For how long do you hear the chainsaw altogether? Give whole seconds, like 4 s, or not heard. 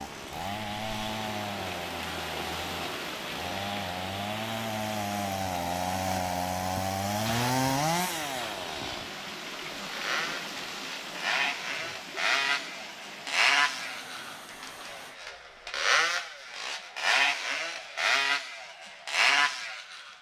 20 s.